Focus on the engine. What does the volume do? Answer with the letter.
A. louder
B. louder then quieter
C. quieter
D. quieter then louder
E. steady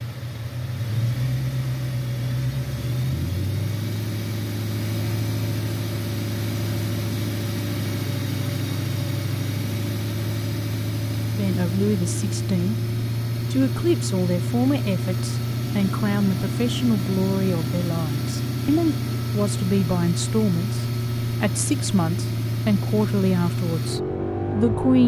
E.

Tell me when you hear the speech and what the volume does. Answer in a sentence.
The speech can be heard briefly from 11.3 to 12.8 s; and from 13.5 to 25.0 s, at a steady volume.